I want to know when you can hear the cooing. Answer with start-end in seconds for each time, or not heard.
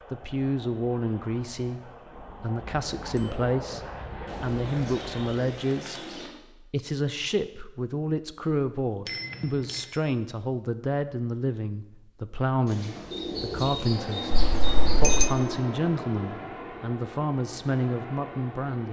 4.2-6.3, 12.7-15.2.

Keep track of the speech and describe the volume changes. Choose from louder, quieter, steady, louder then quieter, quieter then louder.
steady.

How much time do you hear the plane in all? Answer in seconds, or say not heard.
11 s.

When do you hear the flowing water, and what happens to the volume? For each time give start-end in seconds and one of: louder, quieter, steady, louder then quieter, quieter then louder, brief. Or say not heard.
not heard.